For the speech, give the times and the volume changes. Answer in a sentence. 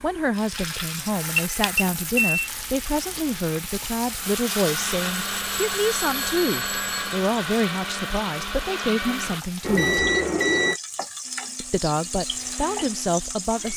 You can hear the speech from 0.0 to 10.1 s, at a steady volume; and briefly from 11.6 to 13.7 s.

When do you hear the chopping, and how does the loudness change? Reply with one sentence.
You can't hear the chopping here.